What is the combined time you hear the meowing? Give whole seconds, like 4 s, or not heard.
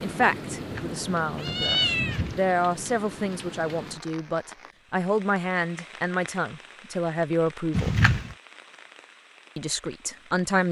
2 s.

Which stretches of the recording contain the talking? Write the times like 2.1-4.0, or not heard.
0.0-8.0, 9.6-10.6.